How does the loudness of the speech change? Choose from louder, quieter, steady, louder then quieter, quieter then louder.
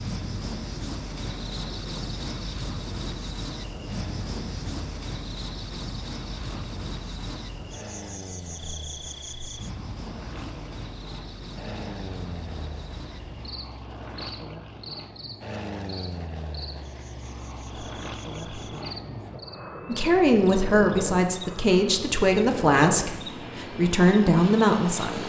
quieter then louder.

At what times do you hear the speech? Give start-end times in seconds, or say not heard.
19.9-25.2.